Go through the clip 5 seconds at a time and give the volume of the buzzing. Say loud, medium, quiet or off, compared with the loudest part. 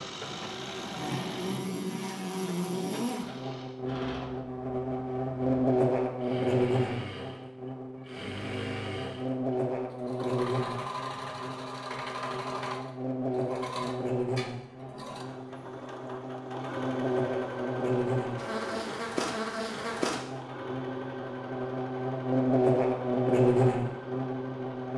medium, loud, medium, medium, loud.